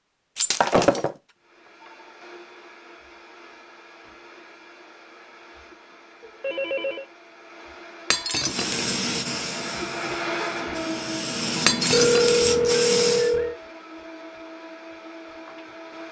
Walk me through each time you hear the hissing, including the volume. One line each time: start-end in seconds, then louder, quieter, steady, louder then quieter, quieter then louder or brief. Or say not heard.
8.4-13.3 quieter then louder.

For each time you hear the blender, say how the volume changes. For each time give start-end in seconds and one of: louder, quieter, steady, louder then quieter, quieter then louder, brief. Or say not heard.
1.4-16.0 louder then quieter.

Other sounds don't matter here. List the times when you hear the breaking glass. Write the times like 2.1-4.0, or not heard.
0.3-1.1, 8.1-8.9, 11.7-12.6.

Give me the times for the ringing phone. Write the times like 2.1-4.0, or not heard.
6.2-7.0, 11.9-13.6.